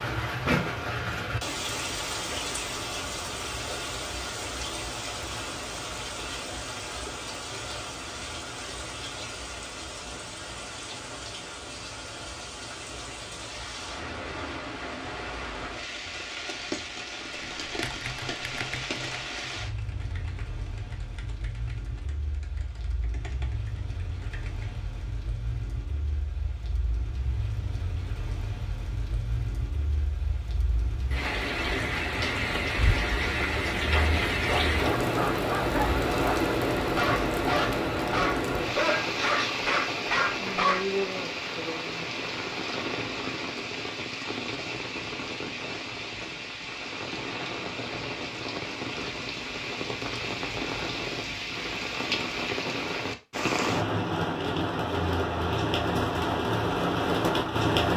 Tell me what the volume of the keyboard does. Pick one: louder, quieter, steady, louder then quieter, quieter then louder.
quieter then louder.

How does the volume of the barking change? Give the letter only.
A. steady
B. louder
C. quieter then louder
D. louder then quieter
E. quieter
B.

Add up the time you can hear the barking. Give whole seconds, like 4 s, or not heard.
7 s.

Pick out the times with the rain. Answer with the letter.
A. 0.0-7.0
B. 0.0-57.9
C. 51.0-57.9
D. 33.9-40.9
B.